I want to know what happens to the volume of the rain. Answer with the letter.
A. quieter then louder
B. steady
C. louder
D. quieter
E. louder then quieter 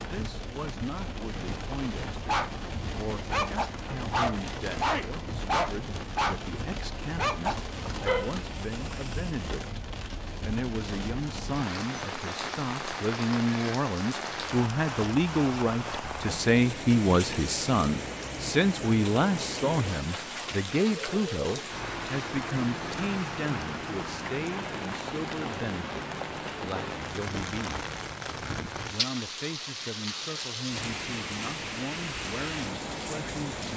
B.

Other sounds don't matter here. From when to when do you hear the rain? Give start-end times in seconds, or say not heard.
0.0-33.7.